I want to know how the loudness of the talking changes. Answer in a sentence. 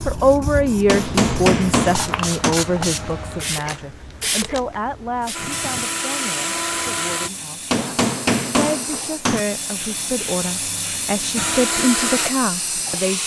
The loudness of the talking goes down, then up.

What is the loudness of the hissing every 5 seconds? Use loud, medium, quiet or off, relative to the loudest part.
loud, medium, loud.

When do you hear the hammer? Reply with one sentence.
You can hear the hammer from 0.8 to 2.5 s and from 7.7 to 9.4 s.